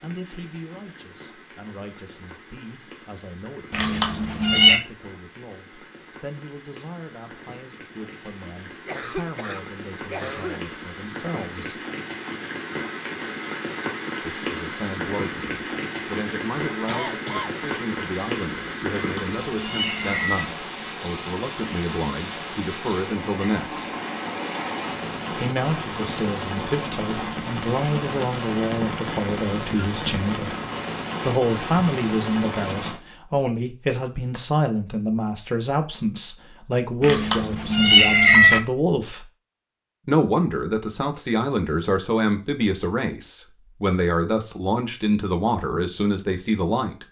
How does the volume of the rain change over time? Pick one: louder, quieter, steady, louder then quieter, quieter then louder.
louder.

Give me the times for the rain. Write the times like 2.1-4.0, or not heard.
0.0-33.0.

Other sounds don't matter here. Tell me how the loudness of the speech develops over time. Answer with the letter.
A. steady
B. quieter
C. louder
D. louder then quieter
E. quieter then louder
C.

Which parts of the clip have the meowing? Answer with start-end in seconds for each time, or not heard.
3.7-4.8, 18.9-20.4, 37.0-38.6.